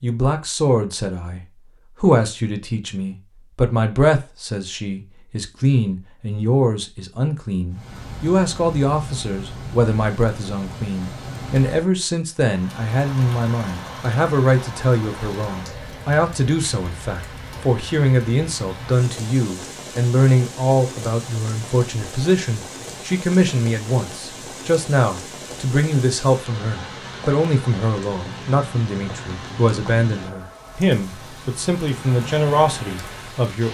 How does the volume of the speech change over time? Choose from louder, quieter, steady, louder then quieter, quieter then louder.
steady.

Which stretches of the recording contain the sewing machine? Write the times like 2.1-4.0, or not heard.
not heard.